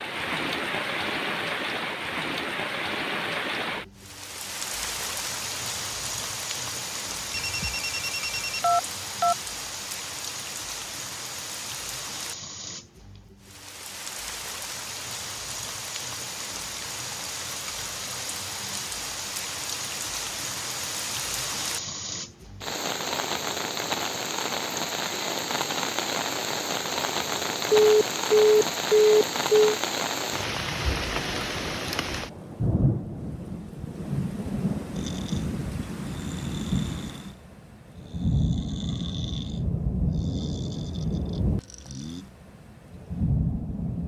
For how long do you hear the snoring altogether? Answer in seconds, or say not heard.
7 s.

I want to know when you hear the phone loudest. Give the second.
28 s.